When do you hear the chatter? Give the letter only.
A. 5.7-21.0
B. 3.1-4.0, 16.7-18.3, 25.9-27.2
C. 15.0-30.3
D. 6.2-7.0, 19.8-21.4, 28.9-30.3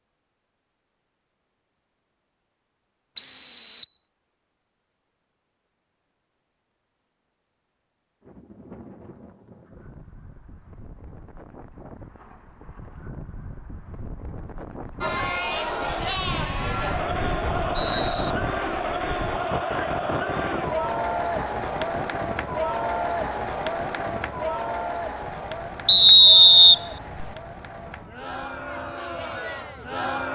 C.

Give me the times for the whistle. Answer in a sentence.
The whistle can be heard from 3.1 to 4.0 s, from 16.7 to 18.3 s and from 25.9 to 27.2 s.